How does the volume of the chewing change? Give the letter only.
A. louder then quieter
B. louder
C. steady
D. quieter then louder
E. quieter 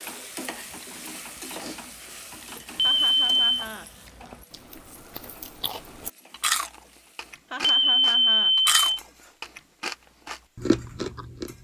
B.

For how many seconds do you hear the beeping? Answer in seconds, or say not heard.
2 s.